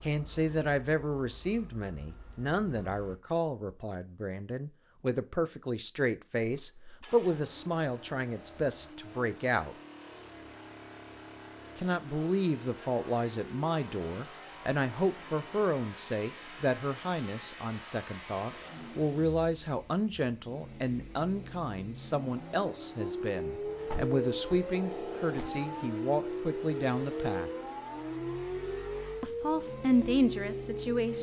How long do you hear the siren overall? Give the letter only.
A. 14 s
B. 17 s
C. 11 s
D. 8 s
C.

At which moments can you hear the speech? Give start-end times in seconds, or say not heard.
0.0-9.8, 11.8-27.5, 29.2-31.1.